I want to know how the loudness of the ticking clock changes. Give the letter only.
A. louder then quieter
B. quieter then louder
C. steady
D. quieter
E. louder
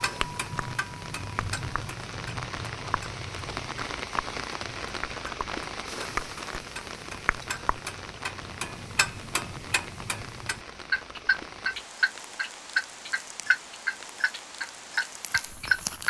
E.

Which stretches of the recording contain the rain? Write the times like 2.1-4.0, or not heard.
0.0-16.0.